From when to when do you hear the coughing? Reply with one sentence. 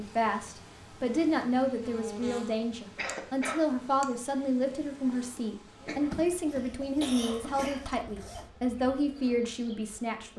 The coughing can be heard from 3.0 to 3.6 s and from 5.8 to 7.8 s.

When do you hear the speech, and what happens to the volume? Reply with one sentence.
The speech can be heard from 0.0 to 10.3 s, at a steady volume.